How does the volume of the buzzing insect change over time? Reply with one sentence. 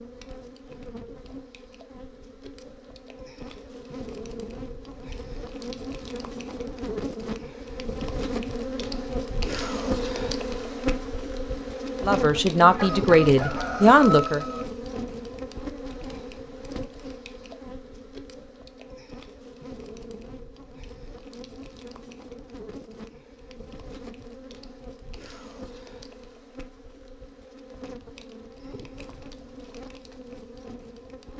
The volume of the buzzing insect goes up, then down.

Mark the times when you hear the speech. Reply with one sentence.
The speech can be heard from 12.0 to 14.4 s.